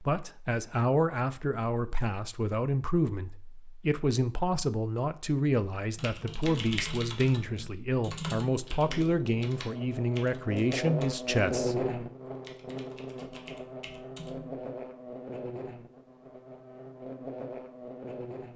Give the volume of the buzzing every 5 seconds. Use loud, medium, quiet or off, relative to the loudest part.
off, medium, loud, medium.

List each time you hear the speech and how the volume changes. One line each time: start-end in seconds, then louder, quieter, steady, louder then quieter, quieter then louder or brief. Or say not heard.
0.0-11.8 steady.